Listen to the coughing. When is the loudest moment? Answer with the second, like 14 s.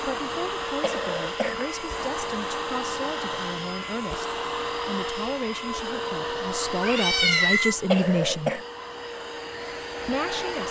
8 s.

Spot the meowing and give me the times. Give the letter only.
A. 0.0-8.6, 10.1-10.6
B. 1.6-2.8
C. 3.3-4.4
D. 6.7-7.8
D.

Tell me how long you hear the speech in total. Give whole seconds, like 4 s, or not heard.
9 s.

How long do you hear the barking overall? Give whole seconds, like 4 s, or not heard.
not heard.